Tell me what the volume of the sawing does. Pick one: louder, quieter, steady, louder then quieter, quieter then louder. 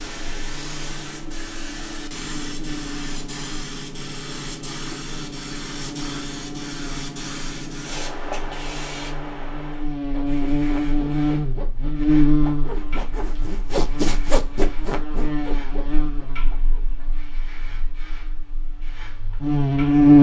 louder then quieter.